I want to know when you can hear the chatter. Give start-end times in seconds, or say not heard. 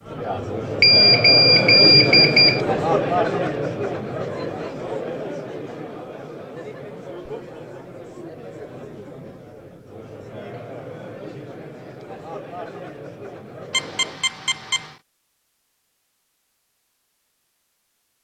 0.0-14.2.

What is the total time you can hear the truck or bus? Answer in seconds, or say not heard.
not heard.